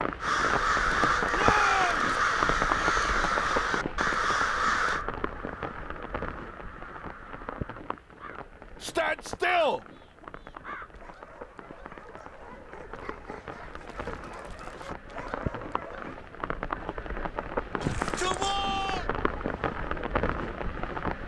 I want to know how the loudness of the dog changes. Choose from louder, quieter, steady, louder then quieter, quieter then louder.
louder.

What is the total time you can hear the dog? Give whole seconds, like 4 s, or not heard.
6 s.